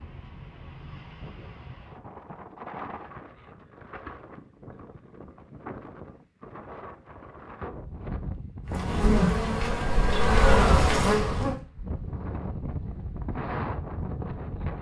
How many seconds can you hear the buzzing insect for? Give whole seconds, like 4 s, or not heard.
3 s.